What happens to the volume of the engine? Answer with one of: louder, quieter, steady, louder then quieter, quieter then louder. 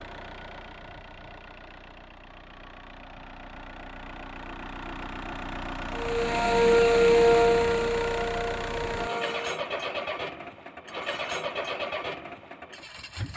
louder.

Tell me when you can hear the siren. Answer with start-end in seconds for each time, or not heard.
6.0-9.6.